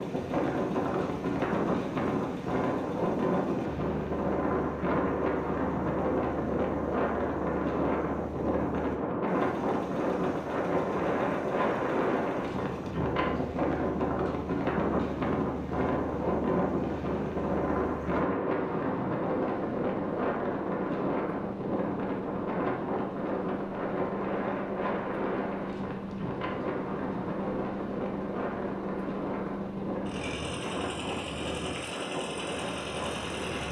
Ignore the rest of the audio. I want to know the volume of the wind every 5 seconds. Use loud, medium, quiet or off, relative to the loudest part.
loud, loud, loud, loud, loud, medium, medium.